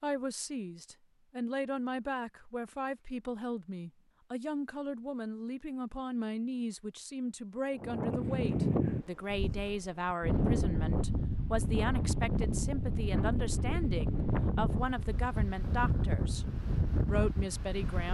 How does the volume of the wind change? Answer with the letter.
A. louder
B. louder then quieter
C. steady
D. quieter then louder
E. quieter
C.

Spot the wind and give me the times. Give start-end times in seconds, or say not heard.
7.8-18.1.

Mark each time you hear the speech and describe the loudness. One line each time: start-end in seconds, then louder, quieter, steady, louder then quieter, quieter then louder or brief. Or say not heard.
0.0-16.4 steady
17.1-18.1 brief.